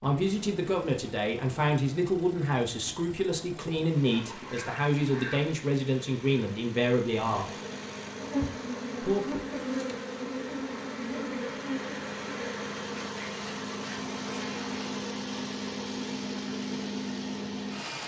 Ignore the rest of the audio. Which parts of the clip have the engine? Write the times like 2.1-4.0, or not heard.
0.0-18.0.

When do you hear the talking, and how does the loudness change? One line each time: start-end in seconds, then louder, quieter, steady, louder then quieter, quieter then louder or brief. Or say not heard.
0.0-7.5 steady
9.0-9.4 brief.